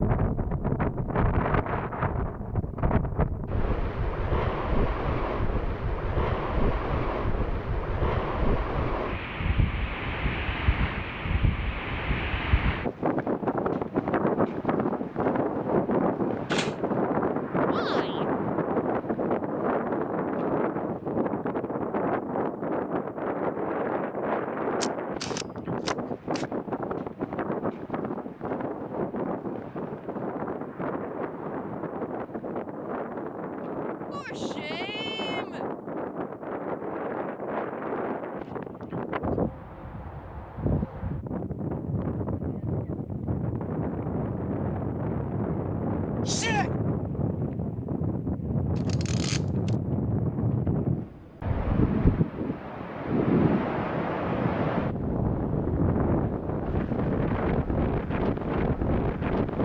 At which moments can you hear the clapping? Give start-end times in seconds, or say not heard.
not heard.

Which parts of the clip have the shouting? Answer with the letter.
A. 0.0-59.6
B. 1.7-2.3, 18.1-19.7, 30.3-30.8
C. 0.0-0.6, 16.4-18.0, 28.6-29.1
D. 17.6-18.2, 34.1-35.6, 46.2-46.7
D.